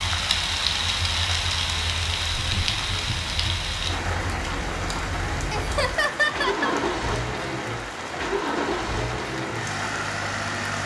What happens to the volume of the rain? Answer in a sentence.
The loudness of the rain goes down.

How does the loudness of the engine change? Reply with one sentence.
The loudness of the engine goes up.